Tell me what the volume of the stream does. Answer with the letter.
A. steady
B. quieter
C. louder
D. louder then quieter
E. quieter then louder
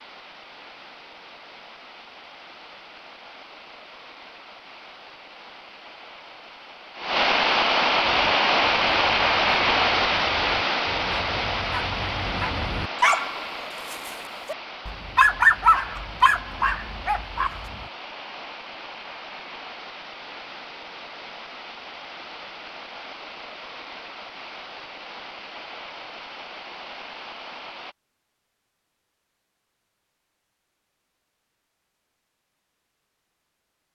D.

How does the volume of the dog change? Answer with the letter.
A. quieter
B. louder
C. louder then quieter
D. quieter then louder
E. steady
C.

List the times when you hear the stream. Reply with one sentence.
The stream can be heard from 0.0 to 27.9 s.